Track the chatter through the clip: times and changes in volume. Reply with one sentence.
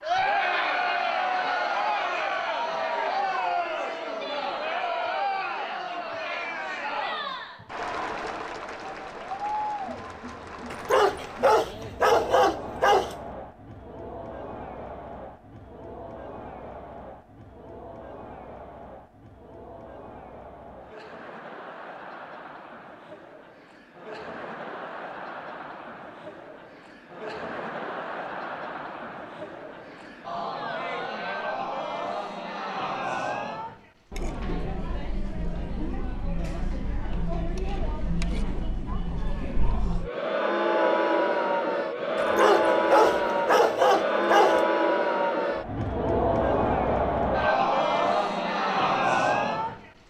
You can hear the chatter from 0.0 to 49.9 s, getting quieter then louder.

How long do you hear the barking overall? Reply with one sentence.
You can hear the barking for 5 seconds altogether.